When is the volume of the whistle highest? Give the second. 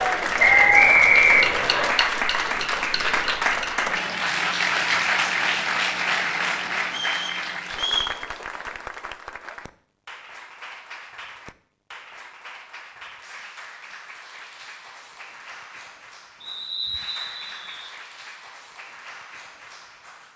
1 s.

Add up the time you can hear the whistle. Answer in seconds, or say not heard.
4 s.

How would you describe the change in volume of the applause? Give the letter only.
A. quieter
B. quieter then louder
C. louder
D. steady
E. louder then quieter
A.